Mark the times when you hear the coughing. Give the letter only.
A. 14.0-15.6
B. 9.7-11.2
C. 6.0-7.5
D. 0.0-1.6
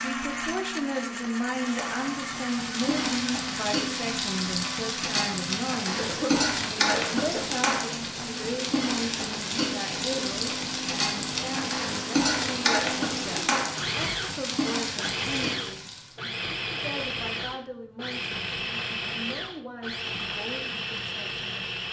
C.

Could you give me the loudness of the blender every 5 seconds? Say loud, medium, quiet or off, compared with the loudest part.
loud, medium, loud, loud, loud.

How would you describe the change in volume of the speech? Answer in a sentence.
The loudness of the speech goes down.